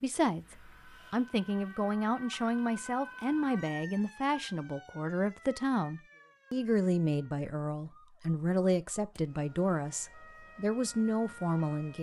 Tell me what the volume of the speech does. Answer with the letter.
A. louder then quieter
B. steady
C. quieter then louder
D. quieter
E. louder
B.